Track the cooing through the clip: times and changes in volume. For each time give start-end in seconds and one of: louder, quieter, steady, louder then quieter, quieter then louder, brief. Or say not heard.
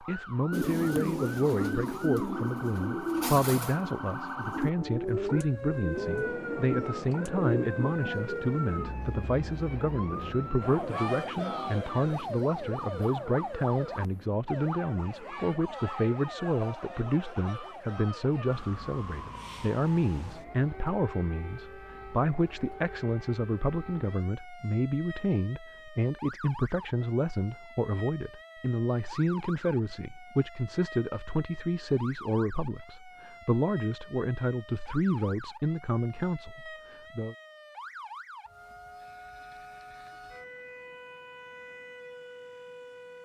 0.5-8.5 steady.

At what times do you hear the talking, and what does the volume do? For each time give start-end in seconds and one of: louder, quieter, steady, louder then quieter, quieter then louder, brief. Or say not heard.
0.0-37.4 steady.